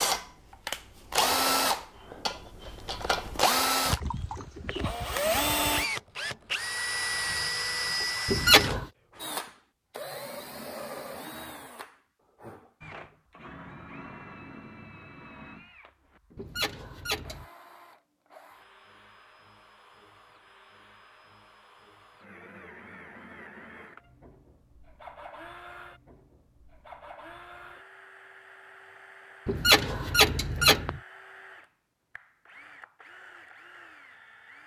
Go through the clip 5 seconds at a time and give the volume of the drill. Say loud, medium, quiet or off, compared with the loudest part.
loud, loud, quiet, quiet, quiet, quiet, quiet.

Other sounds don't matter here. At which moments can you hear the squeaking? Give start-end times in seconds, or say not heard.
8.2-8.8, 16.4-17.4, 29.4-31.0.